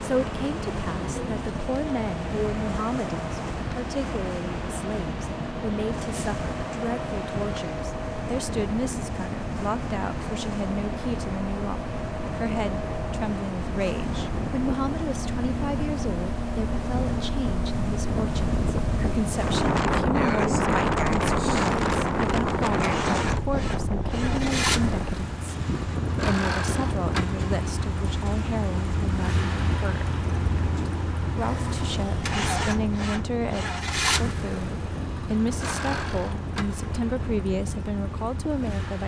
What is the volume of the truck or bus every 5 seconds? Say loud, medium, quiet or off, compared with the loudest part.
loud, loud, loud, loud, loud, loud, loud, medium.